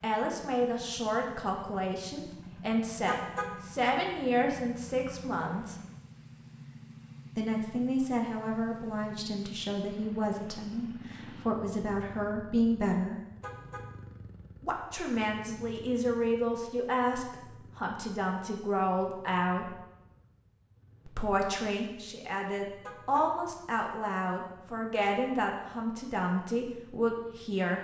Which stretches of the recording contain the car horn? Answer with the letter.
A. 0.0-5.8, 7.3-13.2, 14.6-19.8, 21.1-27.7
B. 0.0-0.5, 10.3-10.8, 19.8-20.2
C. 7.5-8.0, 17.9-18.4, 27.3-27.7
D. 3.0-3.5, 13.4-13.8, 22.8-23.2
D.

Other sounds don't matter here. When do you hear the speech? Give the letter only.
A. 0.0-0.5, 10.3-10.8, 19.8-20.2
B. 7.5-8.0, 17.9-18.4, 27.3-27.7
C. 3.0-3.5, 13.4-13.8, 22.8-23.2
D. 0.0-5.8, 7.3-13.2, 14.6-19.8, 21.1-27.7
D.